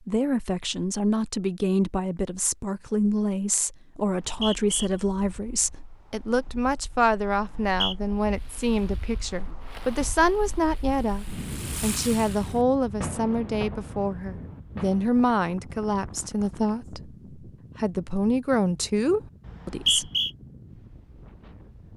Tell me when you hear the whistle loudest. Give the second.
20 s.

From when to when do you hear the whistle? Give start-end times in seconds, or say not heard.
4.0-4.9, 7.4-8.0, 19.4-20.3.